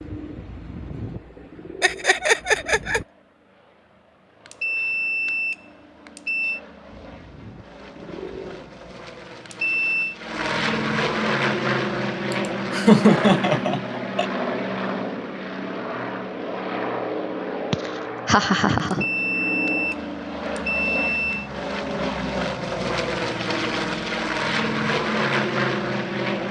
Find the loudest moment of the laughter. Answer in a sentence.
The volume of the laughter peaks at 13 seconds.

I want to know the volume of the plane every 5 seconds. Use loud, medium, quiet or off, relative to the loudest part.
quiet, quiet, loud, medium, loud, loud.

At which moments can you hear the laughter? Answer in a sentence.
You can hear the laughter from 1.8 to 3.0 s, from 12.3 to 14.2 s and from 17.7 to 19.1 s.